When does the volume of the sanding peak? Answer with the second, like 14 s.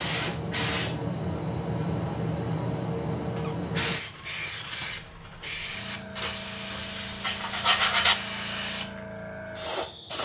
8 s.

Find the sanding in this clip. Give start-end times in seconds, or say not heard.
6.2-8.2.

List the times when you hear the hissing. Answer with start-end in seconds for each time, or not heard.
0.0-10.1.